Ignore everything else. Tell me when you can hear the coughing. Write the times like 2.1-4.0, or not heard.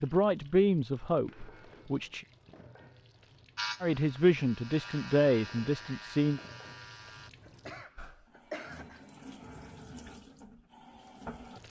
7.4-9.1.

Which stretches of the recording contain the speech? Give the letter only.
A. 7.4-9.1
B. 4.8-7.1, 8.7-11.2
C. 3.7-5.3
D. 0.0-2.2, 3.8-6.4
D.